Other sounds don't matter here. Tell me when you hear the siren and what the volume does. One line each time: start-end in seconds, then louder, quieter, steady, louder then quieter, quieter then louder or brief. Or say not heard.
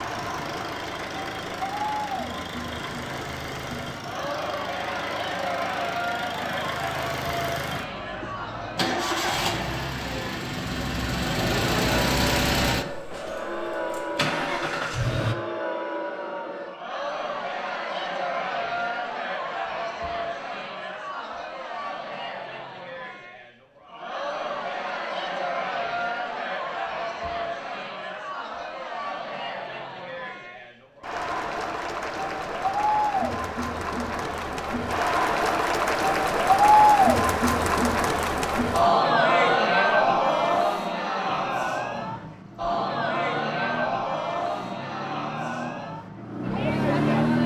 not heard.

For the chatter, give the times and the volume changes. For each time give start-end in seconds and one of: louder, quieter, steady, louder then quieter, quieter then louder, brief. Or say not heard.
0.0-47.4 louder.